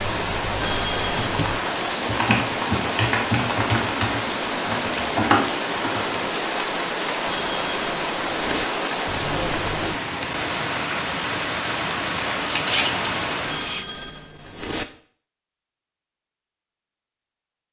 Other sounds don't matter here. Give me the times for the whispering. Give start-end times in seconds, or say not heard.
not heard.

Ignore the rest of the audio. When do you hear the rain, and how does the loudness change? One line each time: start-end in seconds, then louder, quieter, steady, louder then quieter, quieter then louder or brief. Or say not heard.
0.0-13.9 steady.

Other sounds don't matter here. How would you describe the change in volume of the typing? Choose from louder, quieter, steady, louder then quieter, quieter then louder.
quieter then louder.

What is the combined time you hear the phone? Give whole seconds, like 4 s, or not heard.
4 s.